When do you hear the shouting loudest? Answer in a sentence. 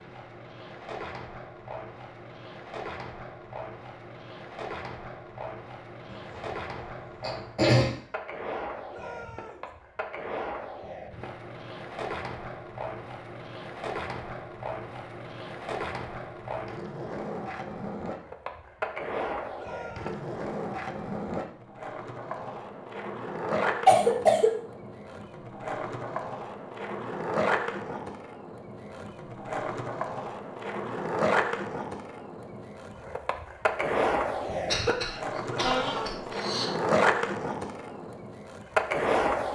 The volume of the shouting peaks at 36 seconds.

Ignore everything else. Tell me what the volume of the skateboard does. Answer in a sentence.
The loudness of the skateboard goes up.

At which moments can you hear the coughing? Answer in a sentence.
You can hear the coughing from 6.1 to 8.0 s, from 23.9 to 24.6 s and from 34.6 to 36.6 s.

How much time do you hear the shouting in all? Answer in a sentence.
You can hear the shouting for 2 seconds altogether.